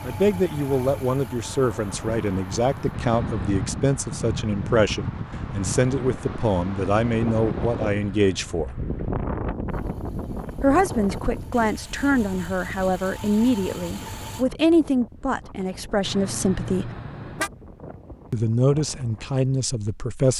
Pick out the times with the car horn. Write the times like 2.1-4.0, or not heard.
2.9-3.8, 7.3-8.7, 16.1-17.5.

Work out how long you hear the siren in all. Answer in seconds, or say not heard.
not heard.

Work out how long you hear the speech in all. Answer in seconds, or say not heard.
17 s.